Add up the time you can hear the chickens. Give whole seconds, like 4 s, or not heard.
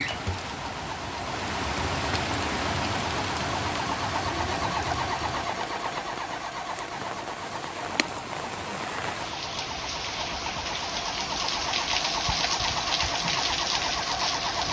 not heard.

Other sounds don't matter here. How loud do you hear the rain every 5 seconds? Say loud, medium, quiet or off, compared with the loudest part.
loud, medium, loud.